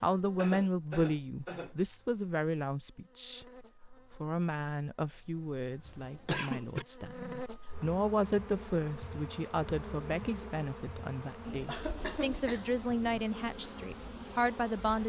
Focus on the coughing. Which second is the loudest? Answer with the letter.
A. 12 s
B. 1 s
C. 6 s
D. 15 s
C.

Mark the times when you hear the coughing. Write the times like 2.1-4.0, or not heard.
0.3-1.8, 5.8-6.8, 11.4-12.9.